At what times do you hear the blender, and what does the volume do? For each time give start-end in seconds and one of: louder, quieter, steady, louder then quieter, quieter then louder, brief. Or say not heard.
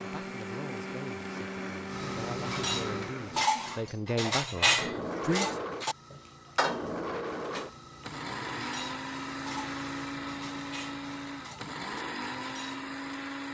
0.0-13.4 steady.